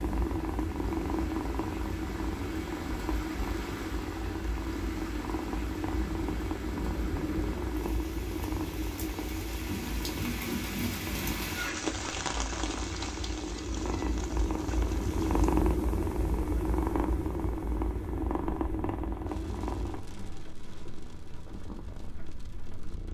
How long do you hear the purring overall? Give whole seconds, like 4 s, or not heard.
23 s.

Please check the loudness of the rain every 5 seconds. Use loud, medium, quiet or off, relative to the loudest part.
medium, medium, loud, quiet, quiet.